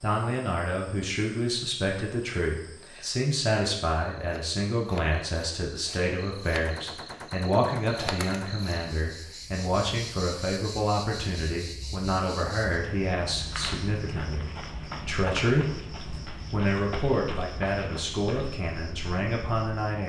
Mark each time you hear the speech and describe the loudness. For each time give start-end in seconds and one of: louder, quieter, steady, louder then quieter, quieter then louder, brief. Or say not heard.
0.0-20.0 steady.